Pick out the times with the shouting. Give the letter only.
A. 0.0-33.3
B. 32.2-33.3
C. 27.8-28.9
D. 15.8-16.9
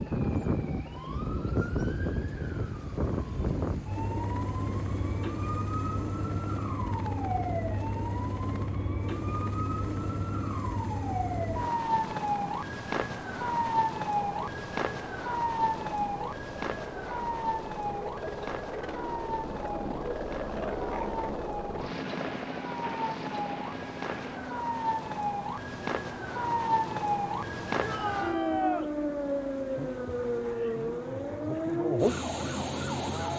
C.